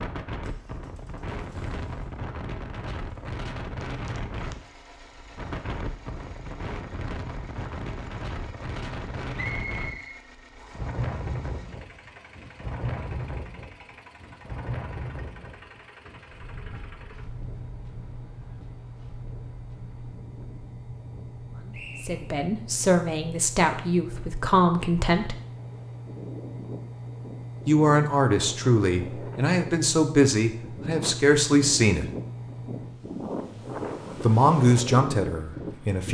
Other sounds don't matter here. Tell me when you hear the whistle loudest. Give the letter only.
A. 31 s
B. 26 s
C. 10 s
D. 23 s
C.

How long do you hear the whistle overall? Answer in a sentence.
You can hear the whistle for 2 seconds altogether.